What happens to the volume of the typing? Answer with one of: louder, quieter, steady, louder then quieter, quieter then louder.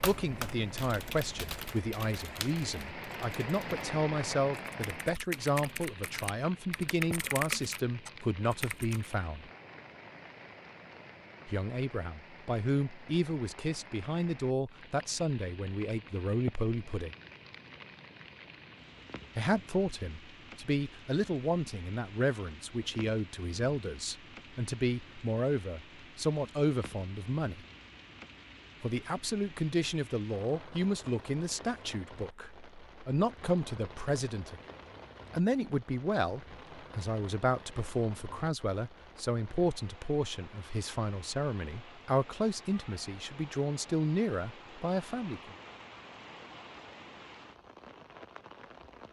quieter then louder.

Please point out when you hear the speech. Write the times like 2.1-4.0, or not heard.
0.0-9.5, 11.4-17.1, 19.4-27.6, 28.8-34.6, 35.3-45.5.